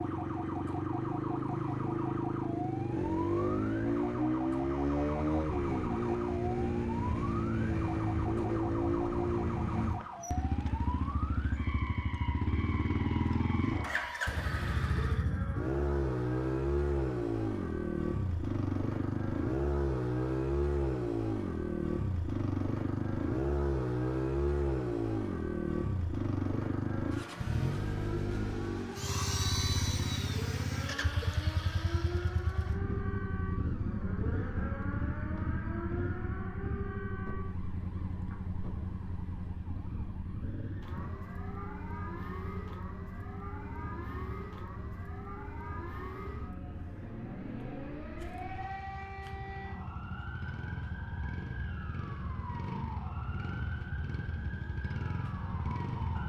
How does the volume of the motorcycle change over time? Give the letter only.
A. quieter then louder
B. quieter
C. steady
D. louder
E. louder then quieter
B.